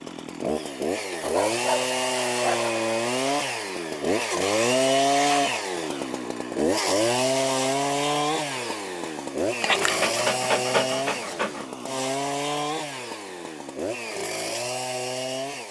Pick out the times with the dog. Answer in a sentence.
The dog can be heard from 1.2 to 2.7 s and from 9.6 to 11.7 s.